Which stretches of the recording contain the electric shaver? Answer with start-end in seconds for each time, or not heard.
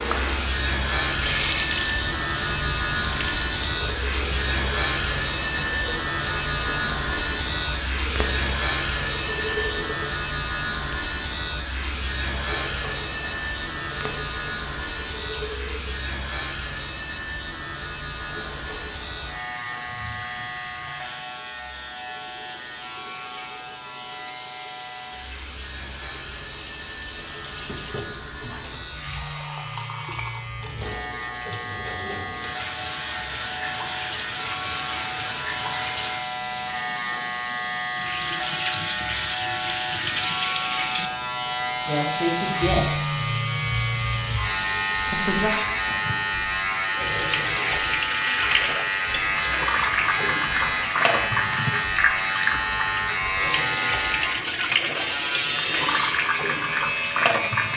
0.0-57.7.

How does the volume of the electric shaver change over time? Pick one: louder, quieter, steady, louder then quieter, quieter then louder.
quieter then louder.